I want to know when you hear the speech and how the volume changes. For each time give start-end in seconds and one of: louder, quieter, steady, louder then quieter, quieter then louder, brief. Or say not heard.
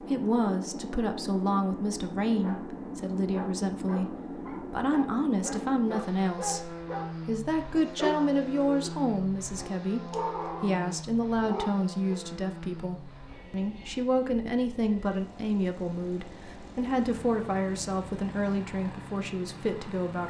0.0-20.2 steady.